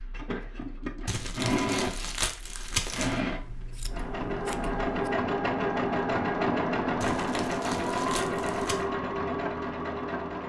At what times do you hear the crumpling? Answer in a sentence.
The crumpling can be heard from 1.1 to 3.2 s and from 7.0 to 8.8 s.